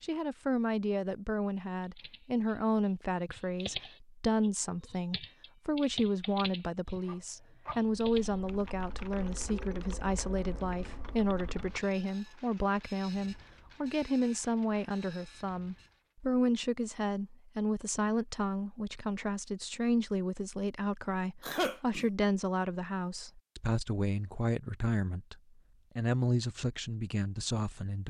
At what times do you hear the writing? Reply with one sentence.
The writing can't be heard in this clip.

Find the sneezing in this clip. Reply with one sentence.
You can hear the sneezing from 21.4 to 22.1 s.